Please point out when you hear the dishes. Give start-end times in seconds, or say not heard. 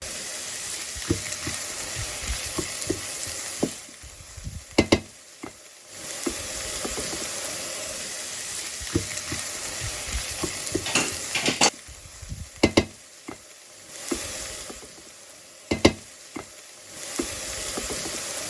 10.3-11.7.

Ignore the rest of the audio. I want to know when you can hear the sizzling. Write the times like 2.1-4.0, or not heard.
0.0-18.4.